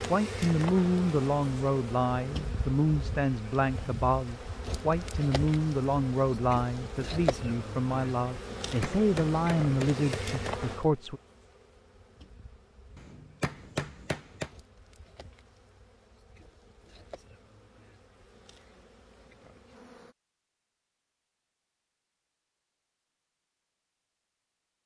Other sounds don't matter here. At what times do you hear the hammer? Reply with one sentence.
The hammer can be heard from 8.6 to 10.6 s and from 12.9 to 14.5 s.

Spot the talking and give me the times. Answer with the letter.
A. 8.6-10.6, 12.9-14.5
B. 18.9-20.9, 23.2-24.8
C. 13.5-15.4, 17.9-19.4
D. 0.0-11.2
D.